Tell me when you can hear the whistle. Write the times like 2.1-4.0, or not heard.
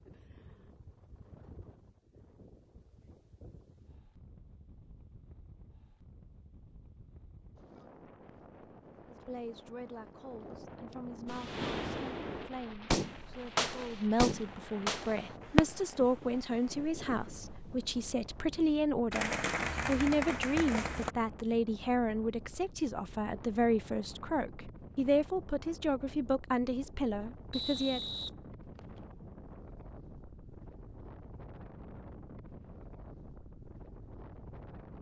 27.5-29.0.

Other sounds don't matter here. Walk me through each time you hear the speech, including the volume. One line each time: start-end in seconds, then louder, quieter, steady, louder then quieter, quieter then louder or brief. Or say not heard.
9.1-28.0 louder.